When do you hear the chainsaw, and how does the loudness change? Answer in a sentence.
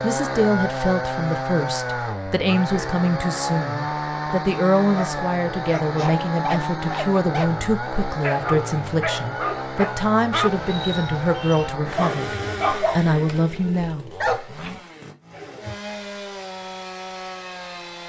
The chainsaw can be heard from 0.0 to 18.0 s, getting quieter.